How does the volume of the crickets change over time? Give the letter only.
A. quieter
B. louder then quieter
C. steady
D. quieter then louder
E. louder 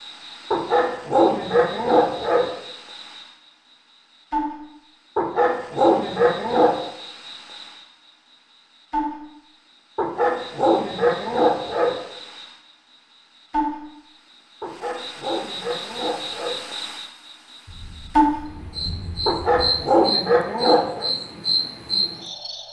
D.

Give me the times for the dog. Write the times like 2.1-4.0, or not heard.
0.5-2.5, 5.2-6.8, 9.9-12.0, 14.6-16.6, 19.2-21.1.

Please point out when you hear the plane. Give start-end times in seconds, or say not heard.
not heard.